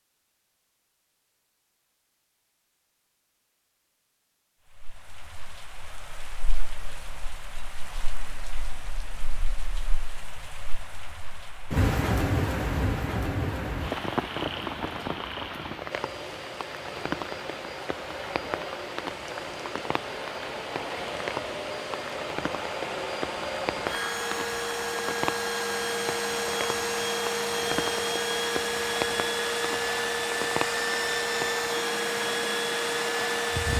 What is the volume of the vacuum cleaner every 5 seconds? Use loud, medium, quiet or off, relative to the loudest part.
off, off, off, medium, medium, loud, loud.